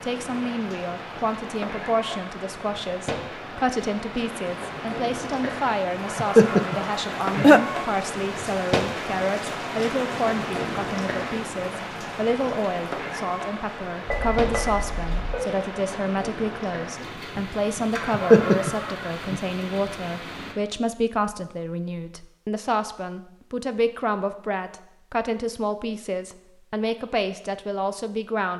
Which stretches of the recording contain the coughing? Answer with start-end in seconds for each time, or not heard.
6.0-7.6, 18.0-19.4.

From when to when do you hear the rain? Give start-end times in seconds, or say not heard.
0.0-20.6.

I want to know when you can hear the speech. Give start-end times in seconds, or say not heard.
0.0-28.5.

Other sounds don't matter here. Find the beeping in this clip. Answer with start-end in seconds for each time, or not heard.
14.1-15.4.